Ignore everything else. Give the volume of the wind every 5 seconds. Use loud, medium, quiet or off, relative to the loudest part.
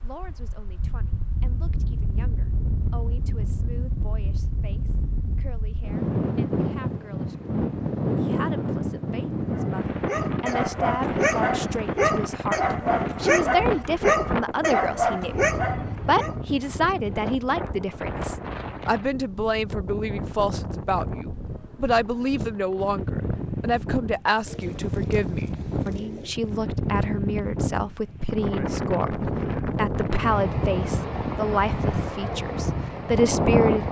medium, loud, loud, medium, medium, loud, loud.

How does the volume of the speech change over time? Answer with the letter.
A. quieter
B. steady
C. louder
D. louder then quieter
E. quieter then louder
C.